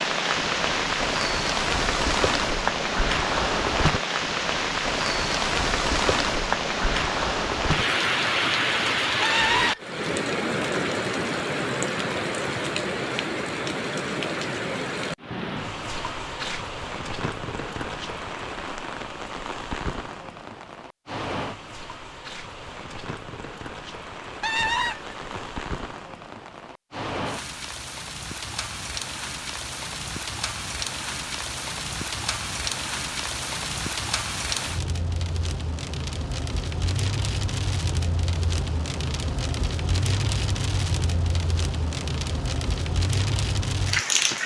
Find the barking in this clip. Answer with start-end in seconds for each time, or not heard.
not heard.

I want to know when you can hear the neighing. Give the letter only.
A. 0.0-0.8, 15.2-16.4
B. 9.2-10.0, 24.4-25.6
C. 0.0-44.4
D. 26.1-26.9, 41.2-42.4
B.